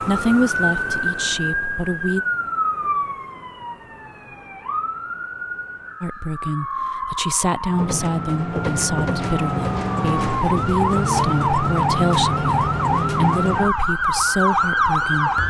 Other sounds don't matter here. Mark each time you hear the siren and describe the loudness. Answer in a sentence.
You can hear the siren from 0.0 to 15.4 s, getting quieter then louder.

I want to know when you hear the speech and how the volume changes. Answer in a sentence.
You can hear the speech briefly from 0.0 to 2.2 s; and from 6.0 to 15.4 s, at a steady volume.